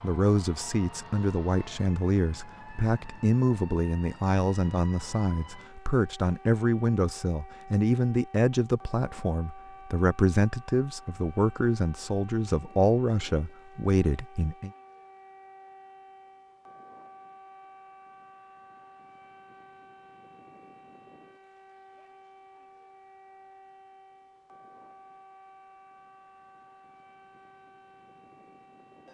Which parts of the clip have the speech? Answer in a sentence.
The speech can be heard from 0.0 to 14.7 s.